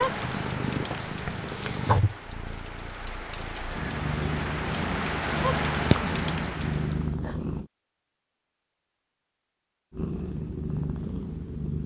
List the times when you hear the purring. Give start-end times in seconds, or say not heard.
0.0-7.7, 9.9-11.8.